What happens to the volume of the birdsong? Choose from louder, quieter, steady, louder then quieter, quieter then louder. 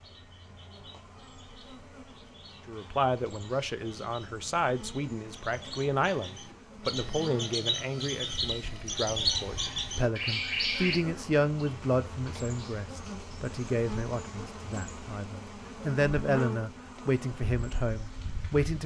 louder.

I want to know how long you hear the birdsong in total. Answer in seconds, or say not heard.
11 s.